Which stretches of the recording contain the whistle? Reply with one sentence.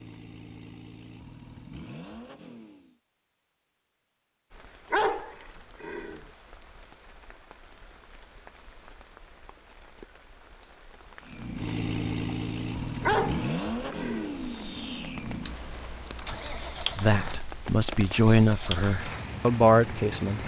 You can't hear the whistle here.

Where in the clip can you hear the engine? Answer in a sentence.
You can hear the engine from 0.0 to 3.0 s and from 11.2 to 20.4 s.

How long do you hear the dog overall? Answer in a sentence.
You can hear the dog for 3 seconds altogether.